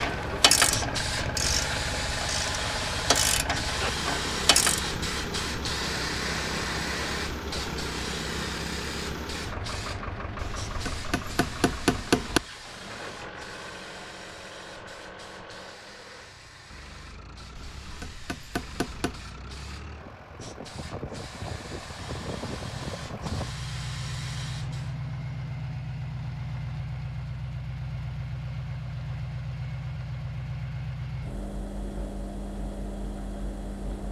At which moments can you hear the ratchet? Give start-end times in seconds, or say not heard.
0.0-4.8.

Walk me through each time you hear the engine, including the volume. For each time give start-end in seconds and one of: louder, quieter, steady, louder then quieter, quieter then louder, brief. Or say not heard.
0.0-34.0 quieter then louder.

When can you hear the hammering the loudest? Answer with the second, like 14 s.
12 s.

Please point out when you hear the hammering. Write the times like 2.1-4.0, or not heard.
10.3-12.4, 17.6-19.2.